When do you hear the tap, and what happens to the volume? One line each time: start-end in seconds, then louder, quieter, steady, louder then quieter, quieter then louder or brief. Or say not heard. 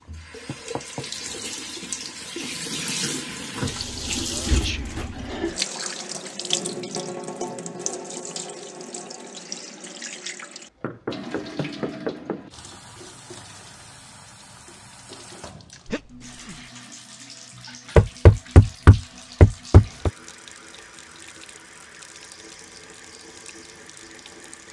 0.0-24.6 quieter.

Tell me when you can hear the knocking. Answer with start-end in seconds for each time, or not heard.
0.5-1.1, 10.8-12.4, 17.9-20.1.